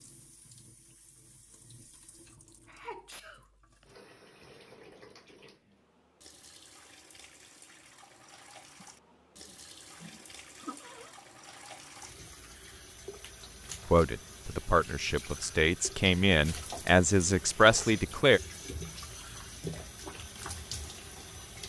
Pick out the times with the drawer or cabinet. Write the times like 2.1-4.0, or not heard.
not heard.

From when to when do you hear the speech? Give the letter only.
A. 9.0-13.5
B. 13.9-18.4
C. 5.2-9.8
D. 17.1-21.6
B.